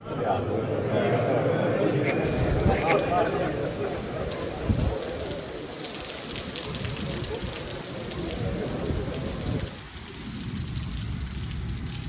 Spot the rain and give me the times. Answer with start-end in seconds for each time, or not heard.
2.2-12.0.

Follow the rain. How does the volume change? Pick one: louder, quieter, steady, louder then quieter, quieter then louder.
steady.